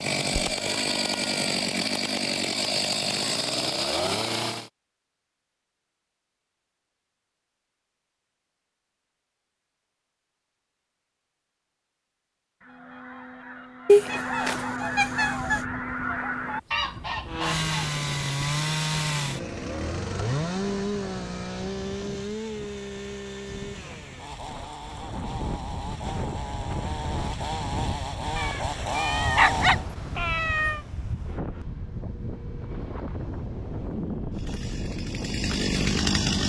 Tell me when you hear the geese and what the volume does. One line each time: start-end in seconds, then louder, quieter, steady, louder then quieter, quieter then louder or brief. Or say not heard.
12.6-17.9 louder.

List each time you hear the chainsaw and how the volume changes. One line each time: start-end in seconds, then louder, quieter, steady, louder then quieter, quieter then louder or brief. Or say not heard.
0.0-4.7 steady
17.2-29.9 quieter then louder
34.3-36.4 brief.